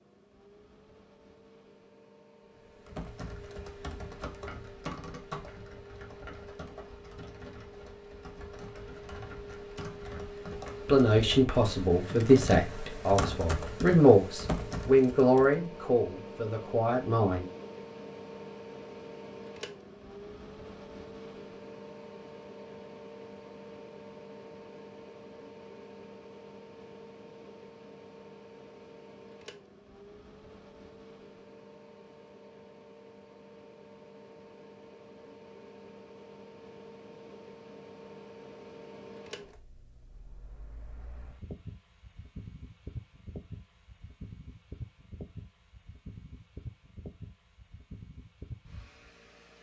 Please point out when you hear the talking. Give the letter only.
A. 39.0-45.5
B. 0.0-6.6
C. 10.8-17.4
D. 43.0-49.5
C.